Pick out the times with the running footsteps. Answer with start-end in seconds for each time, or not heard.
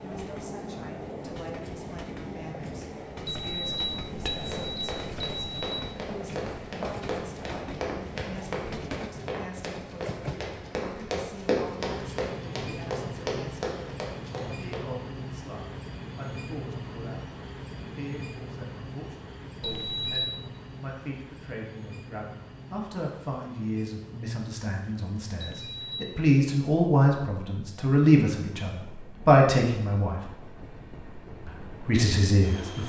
4.4-14.8.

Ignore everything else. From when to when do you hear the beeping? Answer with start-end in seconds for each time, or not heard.
3.2-5.8, 19.6-20.3, 25.4-26.0.